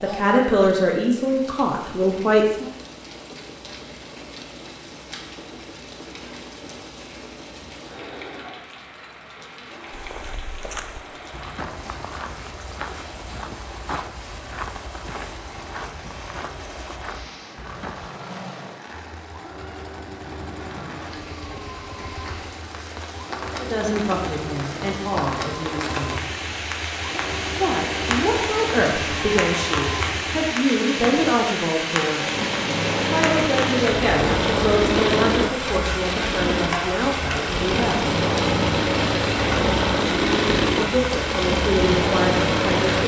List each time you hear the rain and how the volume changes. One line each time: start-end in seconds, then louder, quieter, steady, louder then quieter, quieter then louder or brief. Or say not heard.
0.0-43.0 louder.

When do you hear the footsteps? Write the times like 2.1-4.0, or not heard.
9.9-18.1.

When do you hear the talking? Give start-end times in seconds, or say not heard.
0.0-2.7, 23.6-26.2, 27.4-32.2, 33.0-38.1, 40.8-43.0.